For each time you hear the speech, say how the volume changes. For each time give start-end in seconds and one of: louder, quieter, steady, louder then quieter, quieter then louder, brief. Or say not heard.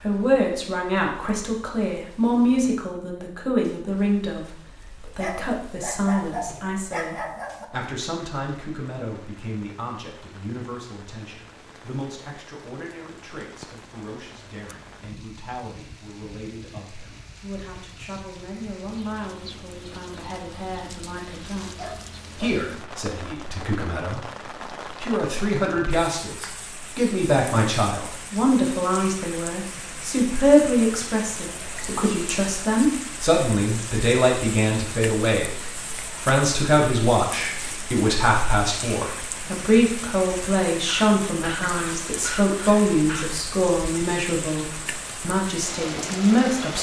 0.0-46.7 quieter then louder.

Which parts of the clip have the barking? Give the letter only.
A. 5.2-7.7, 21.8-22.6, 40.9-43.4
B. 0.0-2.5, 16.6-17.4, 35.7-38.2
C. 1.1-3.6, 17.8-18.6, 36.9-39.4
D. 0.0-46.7
A.